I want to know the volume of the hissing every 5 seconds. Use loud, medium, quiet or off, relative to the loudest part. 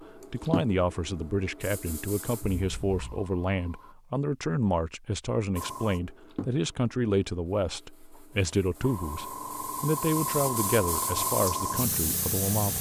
medium, medium, loud.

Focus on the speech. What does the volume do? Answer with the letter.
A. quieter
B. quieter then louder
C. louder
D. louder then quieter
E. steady
E.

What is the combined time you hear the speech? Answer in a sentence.
You can hear the speech for 13 seconds altogether.